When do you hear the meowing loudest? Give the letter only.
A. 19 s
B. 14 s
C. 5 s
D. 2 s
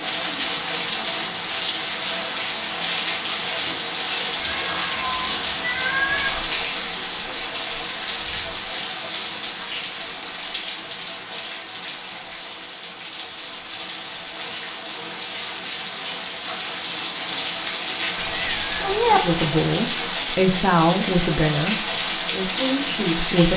A.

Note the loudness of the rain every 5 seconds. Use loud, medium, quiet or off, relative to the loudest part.
loud, loud, medium, loud, loud.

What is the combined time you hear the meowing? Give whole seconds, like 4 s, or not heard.
3 s.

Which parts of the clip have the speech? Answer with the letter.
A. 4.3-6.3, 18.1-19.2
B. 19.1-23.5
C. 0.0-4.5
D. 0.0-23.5
B.